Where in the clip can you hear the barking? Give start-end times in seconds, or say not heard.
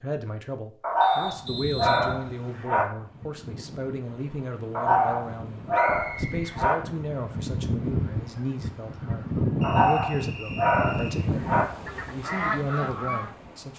0.8-2.9, 4.8-6.8, 9.6-11.7.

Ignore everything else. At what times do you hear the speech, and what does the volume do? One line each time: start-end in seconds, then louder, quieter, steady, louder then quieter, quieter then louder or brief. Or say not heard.
0.0-13.7 steady.